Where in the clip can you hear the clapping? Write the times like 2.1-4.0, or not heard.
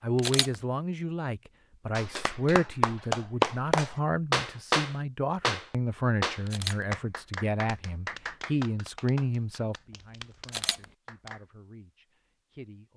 1.9-11.4.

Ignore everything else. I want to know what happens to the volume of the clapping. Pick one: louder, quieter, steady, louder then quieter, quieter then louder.
quieter.